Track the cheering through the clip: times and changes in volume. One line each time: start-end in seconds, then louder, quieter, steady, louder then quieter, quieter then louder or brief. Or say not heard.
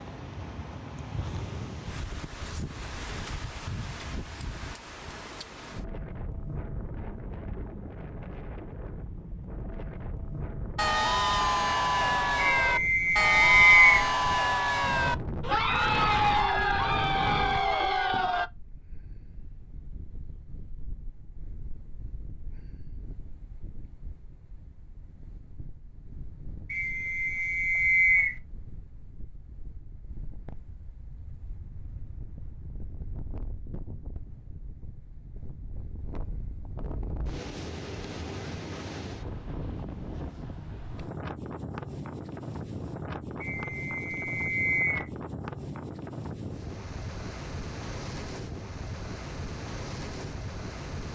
10.8-18.5 steady.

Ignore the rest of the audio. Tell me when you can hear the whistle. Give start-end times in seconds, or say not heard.
12.6-13.9, 26.7-28.4, 43.4-45.0.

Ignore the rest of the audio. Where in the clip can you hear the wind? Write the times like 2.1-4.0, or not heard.
0.0-51.0.